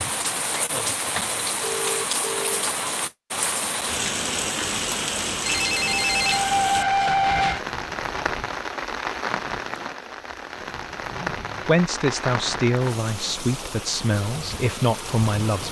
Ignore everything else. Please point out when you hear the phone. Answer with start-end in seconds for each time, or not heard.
1.6-2.6, 5.5-7.6, 11.1-11.8.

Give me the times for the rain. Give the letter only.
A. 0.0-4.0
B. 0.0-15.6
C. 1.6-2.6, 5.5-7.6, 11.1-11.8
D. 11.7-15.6
B.